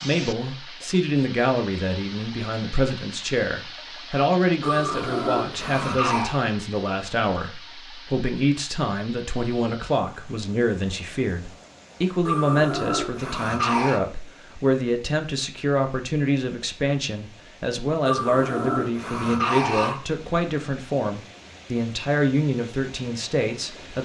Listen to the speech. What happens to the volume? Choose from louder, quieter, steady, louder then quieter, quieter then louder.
steady.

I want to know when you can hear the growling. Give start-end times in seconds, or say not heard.
4.6-6.4, 12.2-14.0, 18.1-20.0.